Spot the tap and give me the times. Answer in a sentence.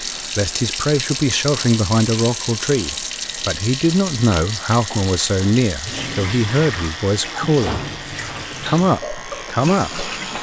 You can hear the tap from 0.0 to 10.3 s.